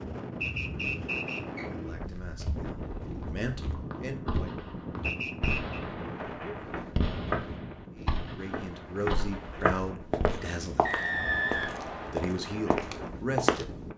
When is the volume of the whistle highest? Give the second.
11 s.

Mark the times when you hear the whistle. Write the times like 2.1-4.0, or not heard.
0.4-1.7, 5.0-5.8, 10.8-12.2.